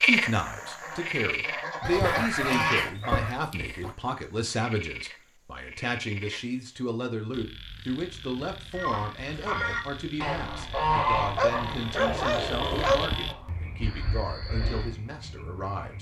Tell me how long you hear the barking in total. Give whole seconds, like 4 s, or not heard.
4 s.